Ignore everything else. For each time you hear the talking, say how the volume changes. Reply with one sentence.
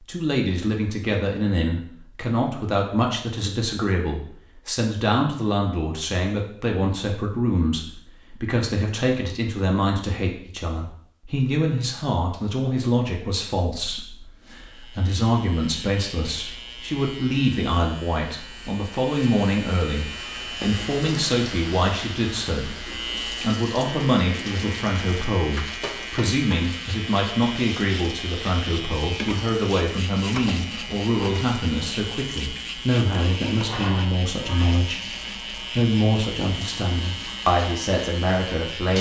You can hear the talking from 0.0 to 38.9 s, at a steady volume.